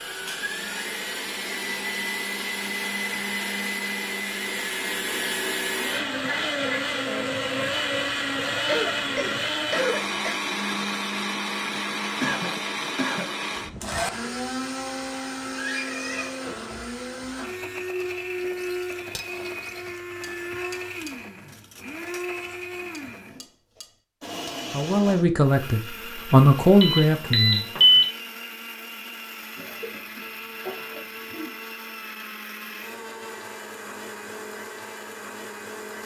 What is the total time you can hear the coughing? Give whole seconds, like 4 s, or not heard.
5 s.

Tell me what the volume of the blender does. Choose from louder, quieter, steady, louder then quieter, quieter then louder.
quieter.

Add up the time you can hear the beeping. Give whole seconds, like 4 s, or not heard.
2 s.